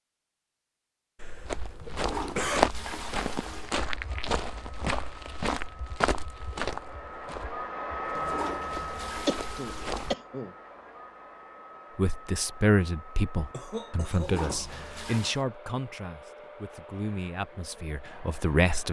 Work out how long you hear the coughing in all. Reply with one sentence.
You can hear the coughing for 4 seconds altogether.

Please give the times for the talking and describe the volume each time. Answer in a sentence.
You can hear the talking from 11.9 to 18.8 s, getting quieter.